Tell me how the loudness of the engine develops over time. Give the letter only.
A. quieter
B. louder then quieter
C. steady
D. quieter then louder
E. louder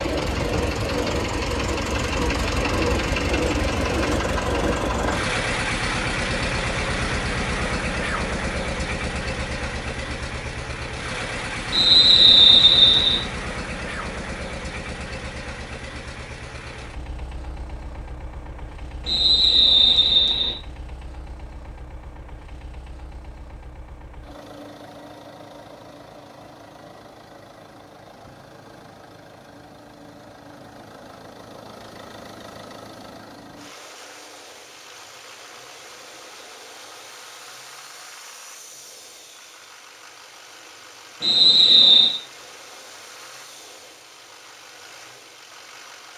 A.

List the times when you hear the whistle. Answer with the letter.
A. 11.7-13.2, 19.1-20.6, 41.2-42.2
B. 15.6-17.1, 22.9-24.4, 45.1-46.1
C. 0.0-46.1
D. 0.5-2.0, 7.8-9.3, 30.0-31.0
A.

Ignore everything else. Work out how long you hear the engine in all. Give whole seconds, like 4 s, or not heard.
46 s.